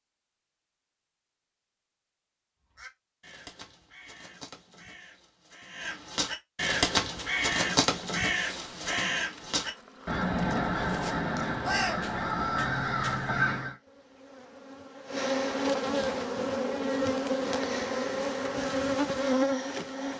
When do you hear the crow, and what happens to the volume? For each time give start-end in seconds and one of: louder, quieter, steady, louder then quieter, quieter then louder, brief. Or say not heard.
2.7-13.8 louder.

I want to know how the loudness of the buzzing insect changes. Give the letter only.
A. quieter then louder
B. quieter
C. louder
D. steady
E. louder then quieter
C.